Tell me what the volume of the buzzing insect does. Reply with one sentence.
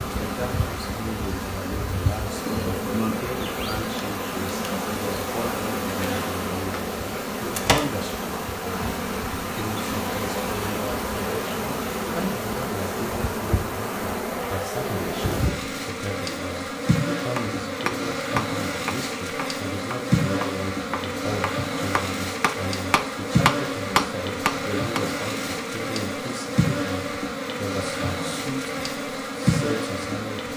The volume of the buzzing insect stays about the same.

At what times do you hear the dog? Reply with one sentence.
You can't hear the dog here.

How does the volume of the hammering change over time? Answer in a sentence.
The volume of the hammering goes down, then up.